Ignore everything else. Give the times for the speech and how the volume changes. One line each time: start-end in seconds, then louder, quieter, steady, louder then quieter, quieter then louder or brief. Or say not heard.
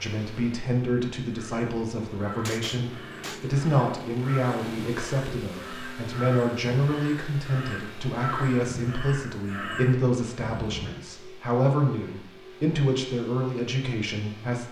0.0-14.6 steady.